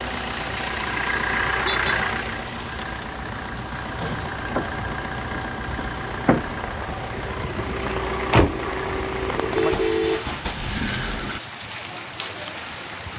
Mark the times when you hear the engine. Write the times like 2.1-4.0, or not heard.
0.0-11.4.